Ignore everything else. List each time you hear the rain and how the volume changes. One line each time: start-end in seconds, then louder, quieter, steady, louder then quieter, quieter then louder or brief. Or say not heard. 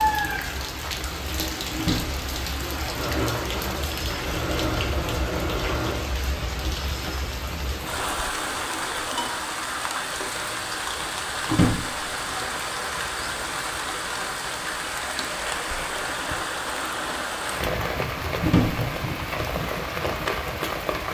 0.0-21.0 steady.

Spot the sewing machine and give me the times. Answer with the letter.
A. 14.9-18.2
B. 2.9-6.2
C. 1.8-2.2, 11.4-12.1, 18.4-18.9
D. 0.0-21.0
B.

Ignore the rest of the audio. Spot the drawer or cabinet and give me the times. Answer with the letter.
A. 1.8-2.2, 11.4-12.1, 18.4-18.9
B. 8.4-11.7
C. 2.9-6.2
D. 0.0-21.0
A.